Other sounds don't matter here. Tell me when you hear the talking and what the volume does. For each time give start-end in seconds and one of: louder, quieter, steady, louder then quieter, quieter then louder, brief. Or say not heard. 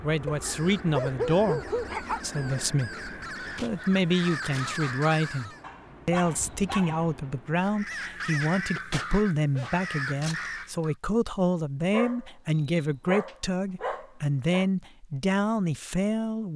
0.0-16.5 steady.